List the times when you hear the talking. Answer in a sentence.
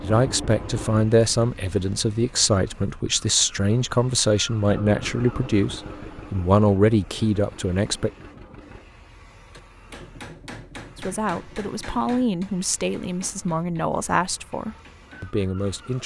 The talking can be heard from 0.0 to 8.1 s and from 10.9 to 16.0 s.